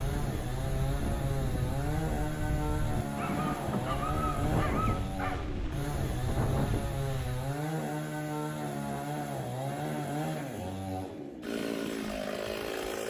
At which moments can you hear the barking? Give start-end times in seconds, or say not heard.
3.0-5.5.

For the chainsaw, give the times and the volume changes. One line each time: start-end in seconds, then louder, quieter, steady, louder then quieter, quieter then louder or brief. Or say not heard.
0.0-13.0 steady.